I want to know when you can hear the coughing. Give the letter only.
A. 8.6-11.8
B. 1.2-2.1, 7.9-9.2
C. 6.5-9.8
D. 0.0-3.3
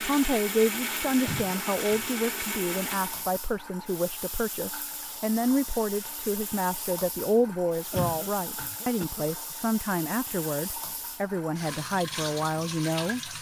B.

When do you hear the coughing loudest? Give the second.
8 s.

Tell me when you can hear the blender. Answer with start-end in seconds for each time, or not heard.
0.0-3.3.